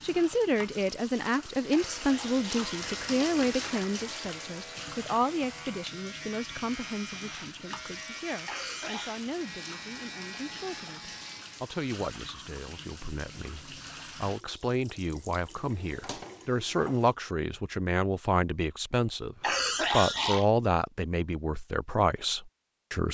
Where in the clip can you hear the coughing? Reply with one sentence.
You can hear the coughing from 1.7 to 2.8 s, from 8.4 to 9.2 s and from 19.4 to 20.4 s.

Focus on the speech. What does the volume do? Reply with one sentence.
The volume of the speech goes down, then up.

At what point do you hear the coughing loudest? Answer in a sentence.
The volume of the coughing peaks at 20 seconds.